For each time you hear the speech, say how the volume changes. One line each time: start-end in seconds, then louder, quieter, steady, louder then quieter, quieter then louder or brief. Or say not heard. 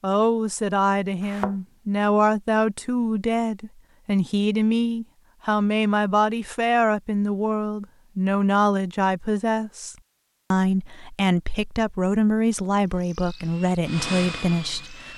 0.0-15.1 steady.